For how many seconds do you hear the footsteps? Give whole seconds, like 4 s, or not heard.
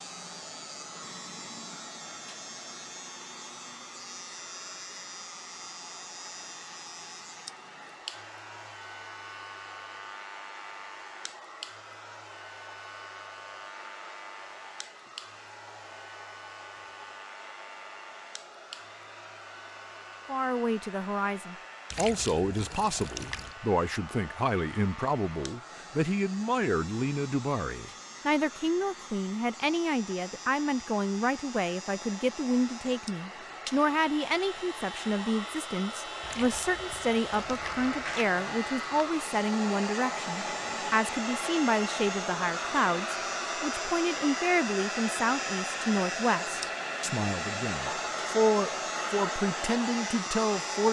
not heard.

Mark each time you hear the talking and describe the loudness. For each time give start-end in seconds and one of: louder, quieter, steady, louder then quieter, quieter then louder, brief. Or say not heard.
20.2-50.8 steady.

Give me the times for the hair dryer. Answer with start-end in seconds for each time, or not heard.
0.0-50.8.